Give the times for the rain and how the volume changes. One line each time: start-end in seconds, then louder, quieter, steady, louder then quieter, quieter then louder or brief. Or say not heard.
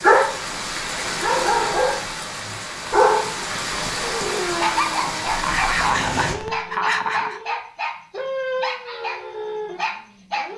0.0-6.3 steady.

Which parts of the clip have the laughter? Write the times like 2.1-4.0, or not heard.
5.2-7.4.